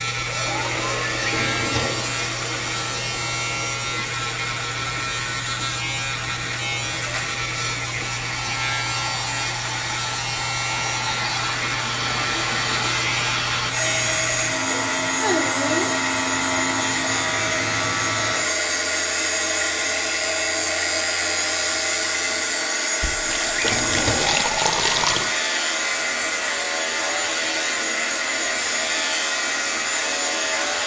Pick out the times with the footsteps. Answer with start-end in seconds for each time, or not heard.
not heard.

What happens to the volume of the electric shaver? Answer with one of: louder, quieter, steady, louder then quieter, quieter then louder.
steady.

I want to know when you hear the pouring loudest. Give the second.
25 s.